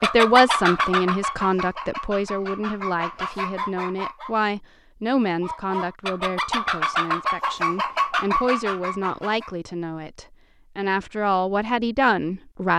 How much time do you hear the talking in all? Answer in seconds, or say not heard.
13 s.